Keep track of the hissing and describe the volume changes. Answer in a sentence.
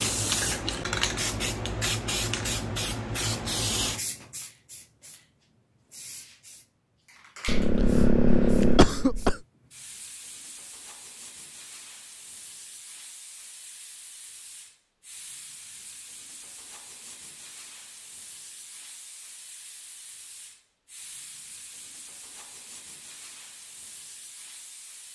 The loudness of the hissing goes down.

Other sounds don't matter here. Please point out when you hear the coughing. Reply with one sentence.
You can hear the coughing from 7.5 to 9.4 s.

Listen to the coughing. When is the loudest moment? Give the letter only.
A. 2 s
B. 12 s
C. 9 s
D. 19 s
C.